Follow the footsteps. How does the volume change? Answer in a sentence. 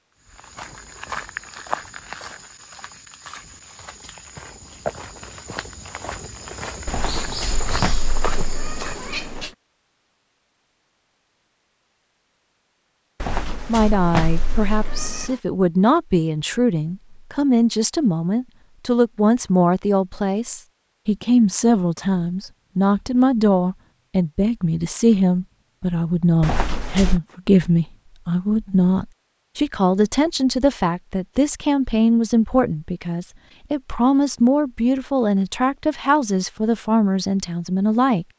The loudness of the footsteps goes down, then up.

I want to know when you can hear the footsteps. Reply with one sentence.
You can hear the footsteps from 0.2 to 9.4 s.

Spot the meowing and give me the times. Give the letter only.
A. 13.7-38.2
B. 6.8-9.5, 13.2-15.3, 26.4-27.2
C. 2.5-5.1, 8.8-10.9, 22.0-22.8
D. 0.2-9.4
B.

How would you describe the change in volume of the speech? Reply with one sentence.
The loudness of the speech stays about the same.